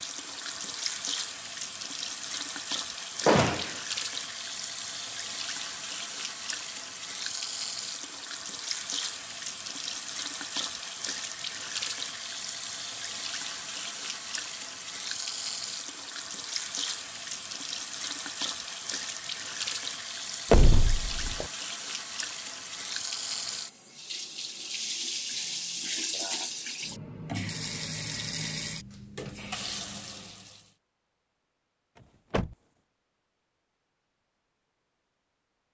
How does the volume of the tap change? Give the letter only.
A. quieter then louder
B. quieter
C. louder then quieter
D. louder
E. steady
E.